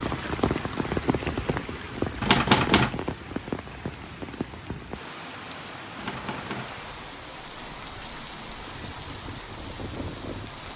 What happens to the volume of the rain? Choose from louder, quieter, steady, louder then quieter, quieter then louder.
quieter.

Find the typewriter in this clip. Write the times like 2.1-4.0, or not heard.
2.2-3.0, 6.0-6.8.